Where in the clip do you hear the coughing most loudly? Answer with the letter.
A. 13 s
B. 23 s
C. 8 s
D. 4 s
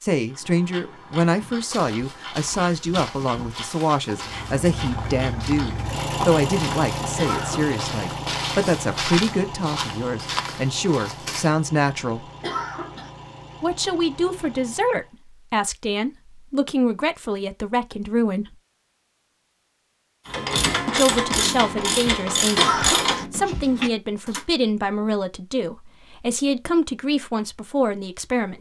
B.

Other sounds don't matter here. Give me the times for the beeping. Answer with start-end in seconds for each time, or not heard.
not heard.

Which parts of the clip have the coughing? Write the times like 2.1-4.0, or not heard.
7.2-7.8, 12.4-13.1, 22.6-23.2.